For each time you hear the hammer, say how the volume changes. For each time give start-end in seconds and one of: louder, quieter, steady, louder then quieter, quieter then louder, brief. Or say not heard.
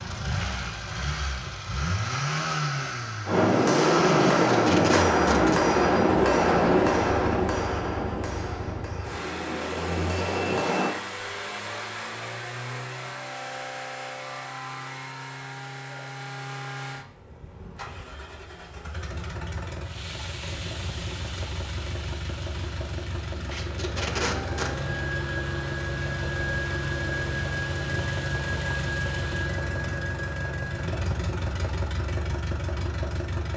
3.2-10.9 quieter.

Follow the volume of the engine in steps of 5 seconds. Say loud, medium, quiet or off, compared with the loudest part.
loud, medium, medium, medium, medium, loud, loud.